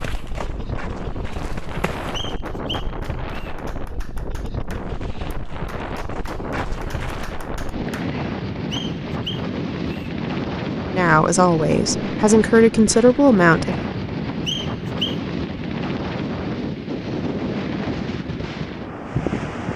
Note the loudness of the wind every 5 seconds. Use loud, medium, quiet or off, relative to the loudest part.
medium, loud, loud, loud.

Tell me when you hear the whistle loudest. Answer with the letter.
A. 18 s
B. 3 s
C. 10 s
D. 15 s
D.